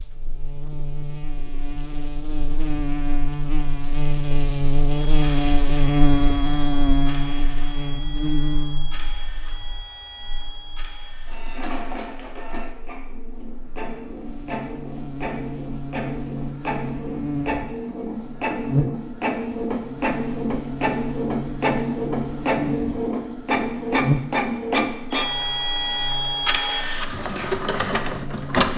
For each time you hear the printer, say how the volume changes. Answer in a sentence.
The printer can be heard from 5.1 to 28.7 s, getting louder.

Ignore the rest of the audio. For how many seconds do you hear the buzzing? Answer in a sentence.
You can hear the buzzing for 29 seconds altogether.